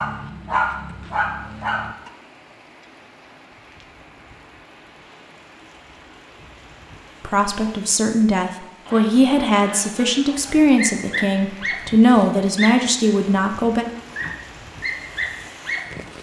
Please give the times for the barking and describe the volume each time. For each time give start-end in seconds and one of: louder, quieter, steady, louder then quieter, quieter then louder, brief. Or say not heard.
0.0-2.1 brief
10.3-16.1 quieter then louder.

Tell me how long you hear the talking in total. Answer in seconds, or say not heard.
7 s.